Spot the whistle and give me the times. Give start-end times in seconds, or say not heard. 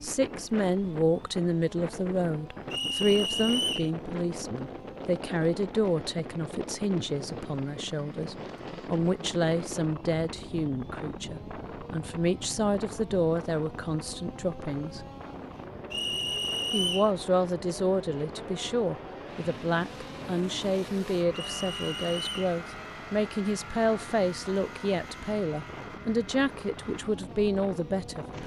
2.7-3.9, 15.9-17.1, 21.3-22.5.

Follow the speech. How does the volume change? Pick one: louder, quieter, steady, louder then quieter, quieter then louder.
steady.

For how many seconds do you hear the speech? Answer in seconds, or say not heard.
27 s.